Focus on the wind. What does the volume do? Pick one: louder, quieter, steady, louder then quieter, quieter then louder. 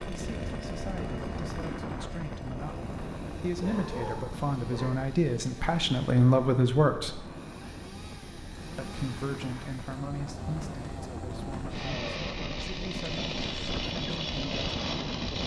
quieter then louder.